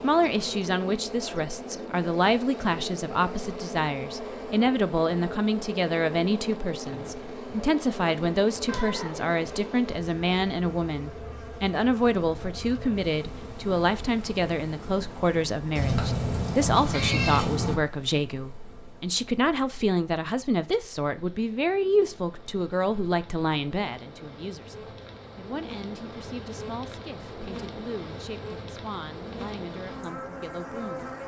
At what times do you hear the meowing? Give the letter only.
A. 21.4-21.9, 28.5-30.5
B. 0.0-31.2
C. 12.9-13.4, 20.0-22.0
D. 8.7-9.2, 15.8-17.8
D.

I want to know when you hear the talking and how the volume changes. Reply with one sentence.
You can hear the talking from 0.0 to 31.2 s, getting quieter.